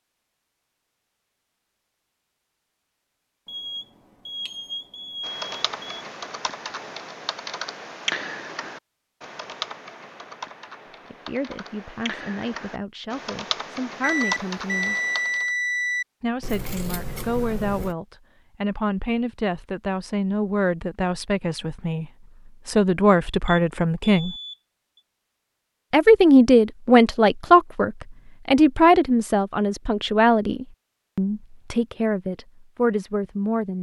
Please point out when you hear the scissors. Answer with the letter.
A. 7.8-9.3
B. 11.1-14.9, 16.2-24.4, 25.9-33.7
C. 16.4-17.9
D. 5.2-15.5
C.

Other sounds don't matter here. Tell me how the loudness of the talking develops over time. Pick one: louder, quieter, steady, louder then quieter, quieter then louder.
louder then quieter.